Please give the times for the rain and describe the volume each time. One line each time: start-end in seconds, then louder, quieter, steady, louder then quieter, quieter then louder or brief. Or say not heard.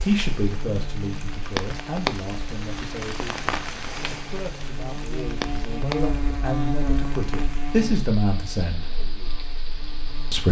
0.0-10.4 quieter.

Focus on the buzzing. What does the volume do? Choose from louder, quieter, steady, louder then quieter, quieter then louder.
louder then quieter.